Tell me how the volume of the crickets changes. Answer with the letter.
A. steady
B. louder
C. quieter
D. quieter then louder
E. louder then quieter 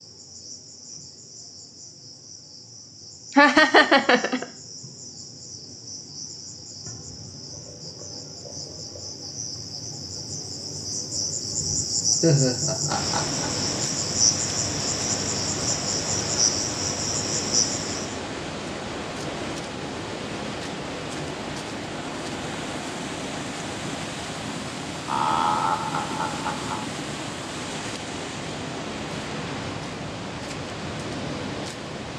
B.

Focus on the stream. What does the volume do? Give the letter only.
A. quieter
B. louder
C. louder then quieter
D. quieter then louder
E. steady
E.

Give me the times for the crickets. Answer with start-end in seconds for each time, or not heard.
0.0-18.2.